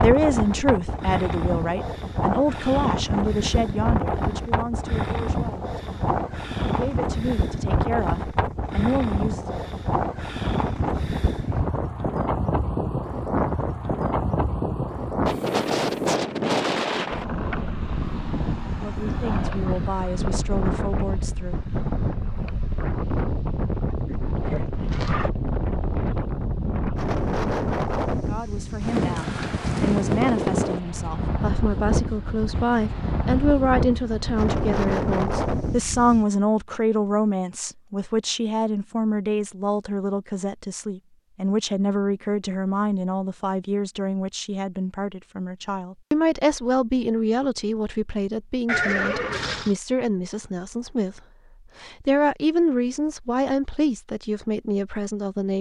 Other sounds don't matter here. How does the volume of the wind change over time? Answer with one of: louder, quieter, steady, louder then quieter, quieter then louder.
steady.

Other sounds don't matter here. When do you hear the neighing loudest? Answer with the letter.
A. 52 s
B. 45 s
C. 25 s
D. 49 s
D.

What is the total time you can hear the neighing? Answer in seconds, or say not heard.
2 s.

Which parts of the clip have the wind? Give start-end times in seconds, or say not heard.
0.0-36.2.